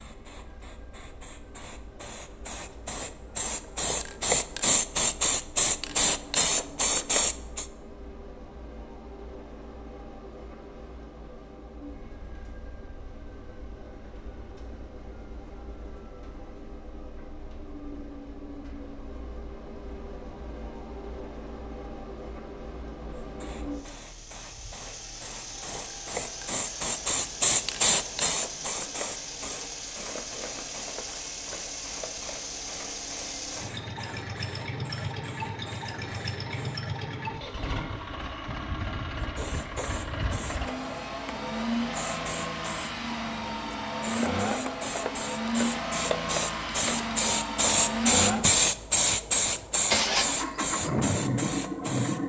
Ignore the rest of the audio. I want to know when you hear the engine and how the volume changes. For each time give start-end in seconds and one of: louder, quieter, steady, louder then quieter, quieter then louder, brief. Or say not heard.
0.0-52.2 louder.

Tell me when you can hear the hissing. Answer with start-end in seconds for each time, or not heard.
0.0-7.7, 23.2-36.9, 39.2-52.2.